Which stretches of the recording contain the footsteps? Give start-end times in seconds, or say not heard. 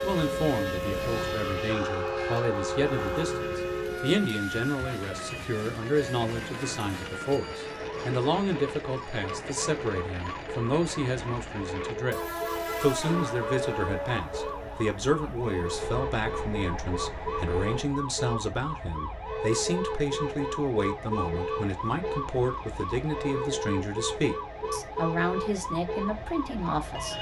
not heard.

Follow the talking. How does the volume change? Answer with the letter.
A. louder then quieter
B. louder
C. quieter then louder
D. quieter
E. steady
E.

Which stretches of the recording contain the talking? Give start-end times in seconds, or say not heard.
0.0-12.2, 12.8-27.1.